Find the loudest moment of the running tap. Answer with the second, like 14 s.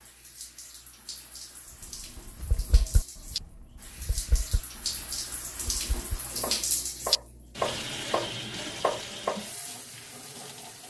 7 s.